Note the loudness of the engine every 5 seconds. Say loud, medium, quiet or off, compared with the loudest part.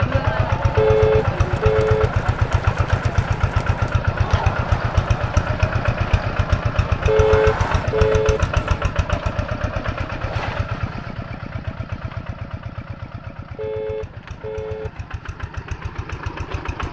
loud, loud, medium, medium.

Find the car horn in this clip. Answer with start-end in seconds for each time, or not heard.
0.8-2.1, 7.0-8.4, 13.6-14.9.